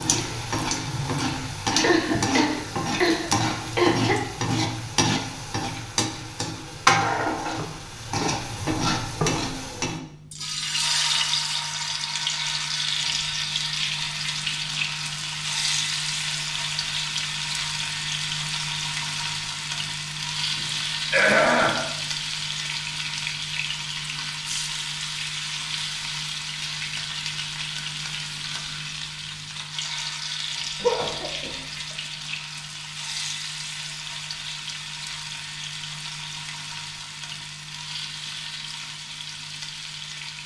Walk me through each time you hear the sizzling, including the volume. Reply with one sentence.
The sizzling can be heard from 0.0 to 40.4 s, getting quieter.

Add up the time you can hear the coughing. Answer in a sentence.
The coughing can be heard for 4 seconds in total.